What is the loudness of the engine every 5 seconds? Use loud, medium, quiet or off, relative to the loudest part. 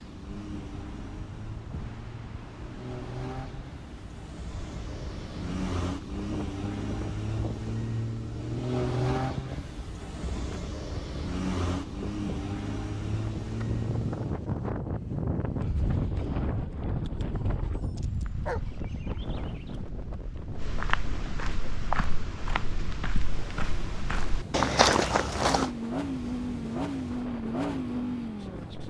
medium, loud, loud, off, off, loud.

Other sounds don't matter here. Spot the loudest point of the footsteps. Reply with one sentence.
The loudest moment of the footsteps is at 25 seconds.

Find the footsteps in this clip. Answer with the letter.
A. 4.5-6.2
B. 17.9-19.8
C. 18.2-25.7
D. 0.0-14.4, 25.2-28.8
C.